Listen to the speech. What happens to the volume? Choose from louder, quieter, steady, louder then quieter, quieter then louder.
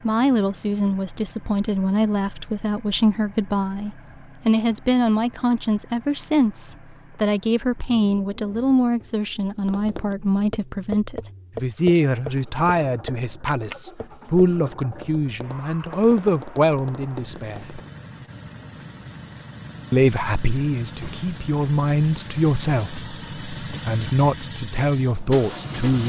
steady.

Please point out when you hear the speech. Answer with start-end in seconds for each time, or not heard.
0.0-17.8, 19.9-26.0.